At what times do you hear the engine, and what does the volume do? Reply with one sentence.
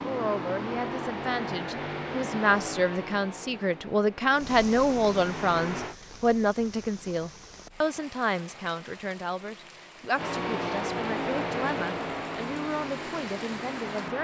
The engine can be heard from 0.0 to 6.0 s, getting quieter then louder; and from 10.2 to 14.2 s, getting quieter.